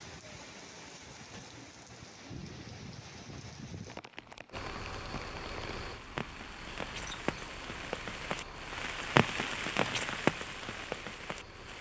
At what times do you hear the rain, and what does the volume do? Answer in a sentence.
The rain can be heard from 0.0 to 11.7 s, getting louder.